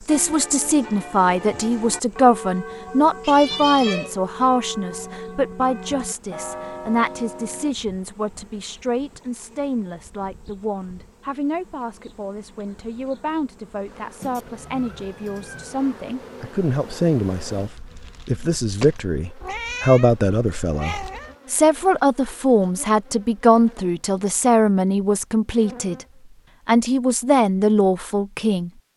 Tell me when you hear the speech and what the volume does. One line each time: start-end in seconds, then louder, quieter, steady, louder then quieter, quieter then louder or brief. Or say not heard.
0.1-26.1 quieter then louder
26.6-28.7 brief.